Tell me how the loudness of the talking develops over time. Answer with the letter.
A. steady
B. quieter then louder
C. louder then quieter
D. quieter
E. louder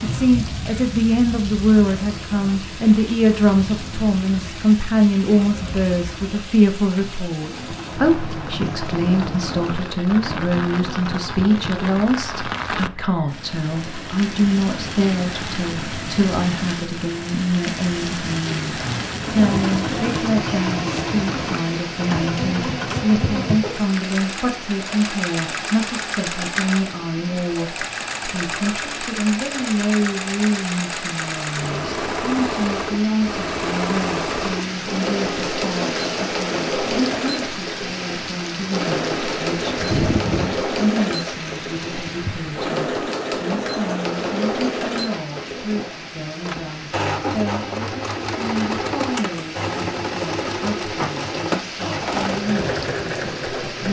D.